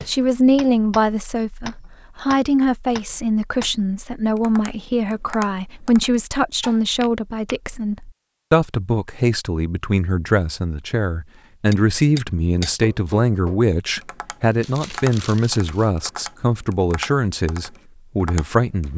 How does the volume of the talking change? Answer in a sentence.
The volume of the talking stays about the same.